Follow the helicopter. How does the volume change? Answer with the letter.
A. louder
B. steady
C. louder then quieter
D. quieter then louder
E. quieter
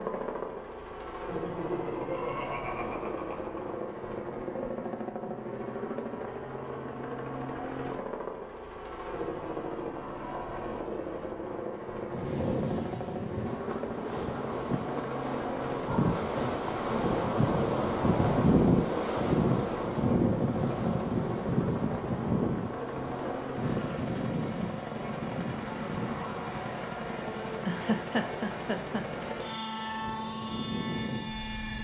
B.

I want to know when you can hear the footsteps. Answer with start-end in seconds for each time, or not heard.
not heard.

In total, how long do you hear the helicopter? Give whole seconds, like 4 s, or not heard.
32 s.